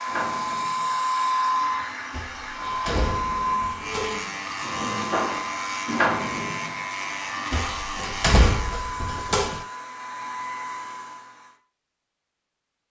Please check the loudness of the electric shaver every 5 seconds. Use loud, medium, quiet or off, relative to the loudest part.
medium, loud, off.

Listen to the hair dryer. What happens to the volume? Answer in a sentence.
The loudness of the hair dryer goes down.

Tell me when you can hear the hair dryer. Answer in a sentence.
You can hear the hair dryer from 0.0 to 11.6 s.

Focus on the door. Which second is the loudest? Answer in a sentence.
The loudest moment of the door is at 8 seconds.